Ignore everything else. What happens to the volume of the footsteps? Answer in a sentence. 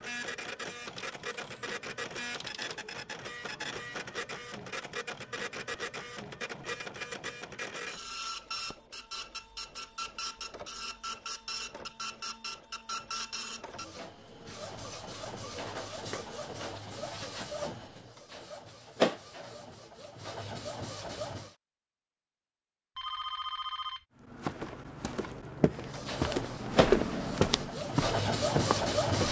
The loudness of the footsteps goes up, then down.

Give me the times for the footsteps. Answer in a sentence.
The footsteps can be heard from 24.2 to 29.2 s.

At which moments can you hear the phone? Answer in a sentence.
The phone can be heard from 0.8 to 2.8 s and from 22.9 to 24.1 s.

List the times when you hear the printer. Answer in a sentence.
You can hear the printer from 0.0 to 21.6 s and from 25.9 to 29.2 s.